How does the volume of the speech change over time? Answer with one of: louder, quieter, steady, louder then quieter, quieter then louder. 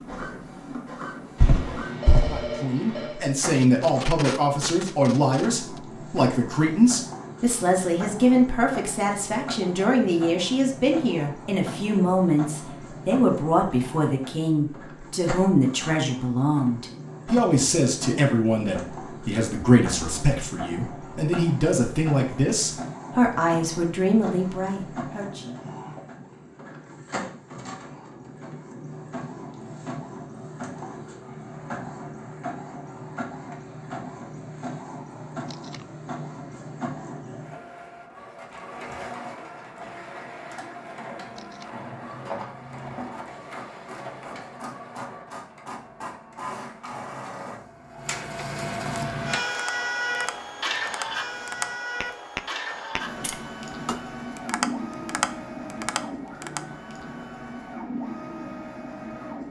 steady.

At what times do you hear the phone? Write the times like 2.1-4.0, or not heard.
1.4-3.1.